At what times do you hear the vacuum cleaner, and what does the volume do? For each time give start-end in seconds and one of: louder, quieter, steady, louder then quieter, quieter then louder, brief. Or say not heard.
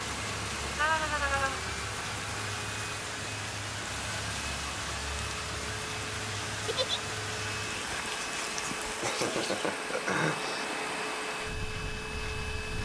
0.0-12.8 steady.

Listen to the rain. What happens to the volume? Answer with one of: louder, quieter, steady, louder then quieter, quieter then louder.
steady.